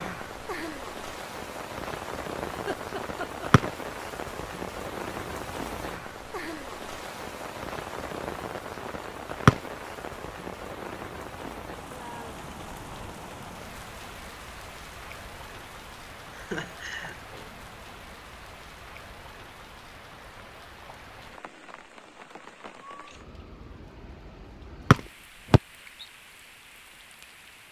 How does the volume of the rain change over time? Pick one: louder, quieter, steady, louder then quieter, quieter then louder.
quieter.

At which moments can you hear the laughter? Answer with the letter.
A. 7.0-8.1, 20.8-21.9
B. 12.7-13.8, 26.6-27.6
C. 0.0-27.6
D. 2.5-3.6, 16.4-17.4
D.